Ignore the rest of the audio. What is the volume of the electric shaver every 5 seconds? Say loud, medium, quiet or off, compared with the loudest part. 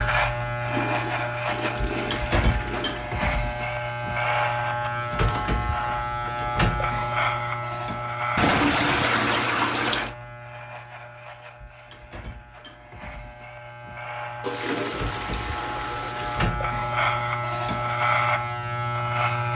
loud, loud, quiet, loud.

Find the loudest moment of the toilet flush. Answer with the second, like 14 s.
9 s.